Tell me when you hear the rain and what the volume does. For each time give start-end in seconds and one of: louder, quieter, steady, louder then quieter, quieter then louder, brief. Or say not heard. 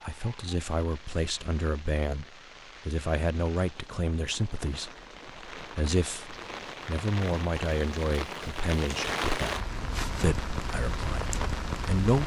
0.0-12.2 louder.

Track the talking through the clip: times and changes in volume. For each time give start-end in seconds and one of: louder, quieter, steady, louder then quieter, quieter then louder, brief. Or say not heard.
0.0-9.6 steady
10.2-12.2 brief.